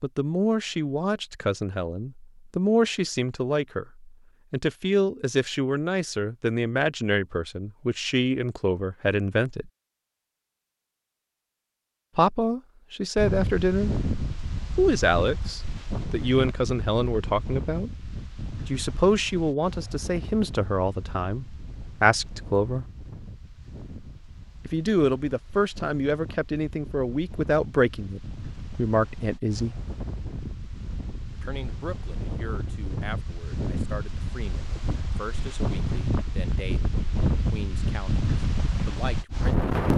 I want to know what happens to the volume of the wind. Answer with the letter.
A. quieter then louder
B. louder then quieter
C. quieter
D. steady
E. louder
A.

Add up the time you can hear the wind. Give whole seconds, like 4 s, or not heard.
27 s.